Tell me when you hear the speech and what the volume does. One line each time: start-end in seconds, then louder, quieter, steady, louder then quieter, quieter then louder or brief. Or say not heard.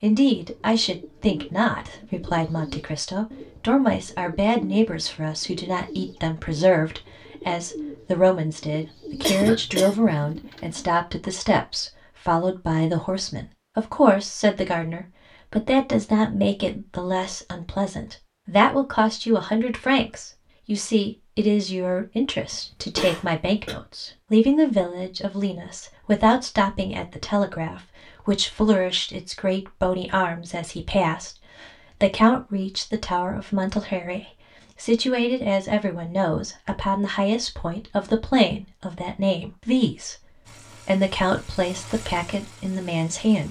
0.0-43.4 steady.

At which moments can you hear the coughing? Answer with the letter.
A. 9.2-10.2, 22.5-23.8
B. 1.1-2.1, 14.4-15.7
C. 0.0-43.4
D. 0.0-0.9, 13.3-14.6
A.